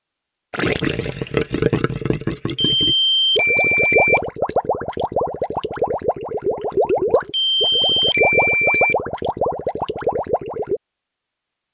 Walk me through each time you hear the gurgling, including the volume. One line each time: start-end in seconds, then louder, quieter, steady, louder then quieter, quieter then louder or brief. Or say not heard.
0.5-10.8 steady.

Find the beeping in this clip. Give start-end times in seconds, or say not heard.
2.5-4.2, 7.3-8.9.